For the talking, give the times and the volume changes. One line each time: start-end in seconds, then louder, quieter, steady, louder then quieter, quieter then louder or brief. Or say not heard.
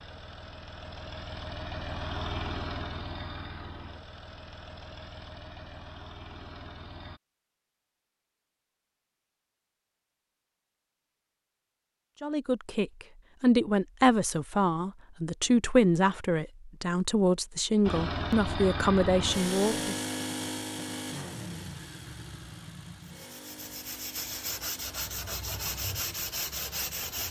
12.2-19.9 steady.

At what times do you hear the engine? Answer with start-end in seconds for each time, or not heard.
0.0-7.2, 17.9-27.2.